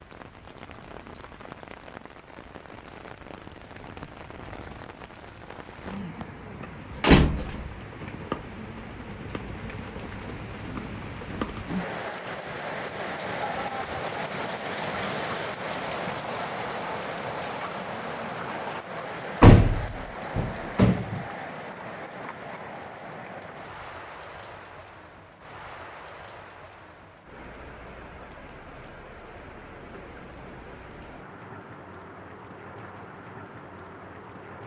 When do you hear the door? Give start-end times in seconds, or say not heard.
7.0-7.7, 19.4-21.2.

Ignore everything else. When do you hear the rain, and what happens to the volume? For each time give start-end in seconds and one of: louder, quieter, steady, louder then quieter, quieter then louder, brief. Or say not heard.
0.0-34.6 louder then quieter.